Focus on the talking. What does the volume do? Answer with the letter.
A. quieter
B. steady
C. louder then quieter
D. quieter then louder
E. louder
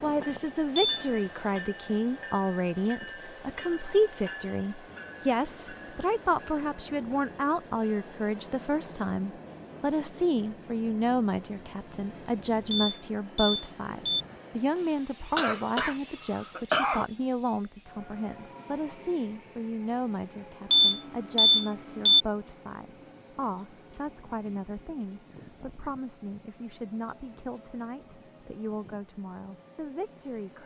A.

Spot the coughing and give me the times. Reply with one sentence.
You can hear the coughing from 15.3 to 17.1 s.